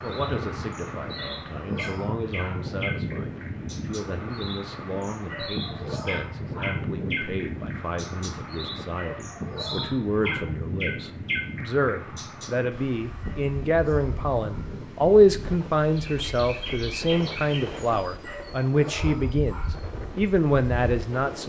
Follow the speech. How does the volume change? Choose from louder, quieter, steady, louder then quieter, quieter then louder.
louder.